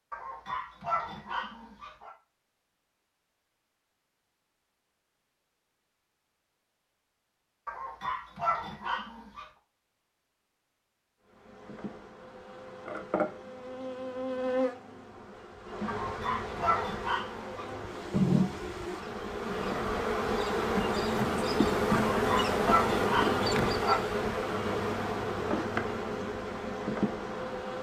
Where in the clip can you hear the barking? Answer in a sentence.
The barking can be heard from 0.1 to 2.1 s, from 7.7 to 9.4 s, from 15.8 to 17.6 s and from 22.1 to 24.0 s.